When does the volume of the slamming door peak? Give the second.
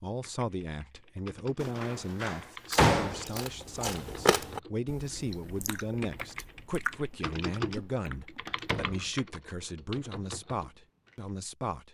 3 s.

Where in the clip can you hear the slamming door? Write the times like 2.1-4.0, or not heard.
1.6-3.3, 8.4-9.1.